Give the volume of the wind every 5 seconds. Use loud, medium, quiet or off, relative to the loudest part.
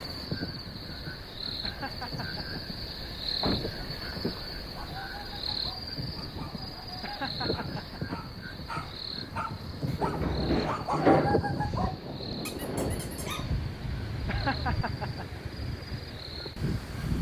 medium, medium, loud, loud.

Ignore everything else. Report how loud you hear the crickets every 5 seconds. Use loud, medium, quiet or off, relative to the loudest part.
loud, loud, medium, medium.